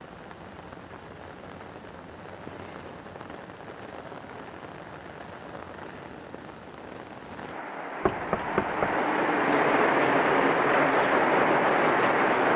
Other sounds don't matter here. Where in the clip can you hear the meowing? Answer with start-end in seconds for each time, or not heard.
not heard.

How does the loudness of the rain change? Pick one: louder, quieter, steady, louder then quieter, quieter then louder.
louder.